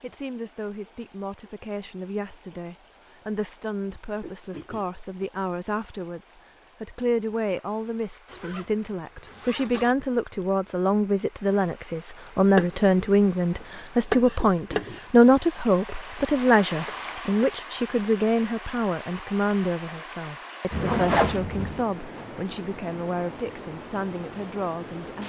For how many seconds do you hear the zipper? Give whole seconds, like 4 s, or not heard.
3 s.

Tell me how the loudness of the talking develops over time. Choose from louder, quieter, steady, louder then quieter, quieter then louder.
louder then quieter.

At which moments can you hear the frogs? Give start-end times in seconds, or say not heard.
not heard.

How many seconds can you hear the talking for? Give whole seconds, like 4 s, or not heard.
25 s.